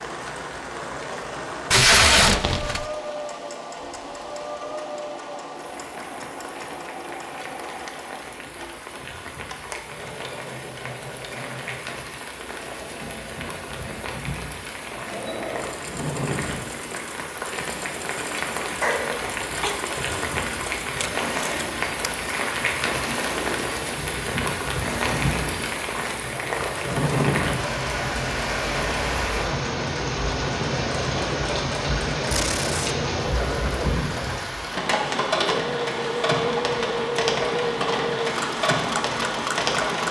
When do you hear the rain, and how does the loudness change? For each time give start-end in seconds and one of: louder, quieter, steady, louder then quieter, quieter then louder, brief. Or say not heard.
0.0-40.0 louder.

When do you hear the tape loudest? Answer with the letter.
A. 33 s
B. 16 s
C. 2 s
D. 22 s
C.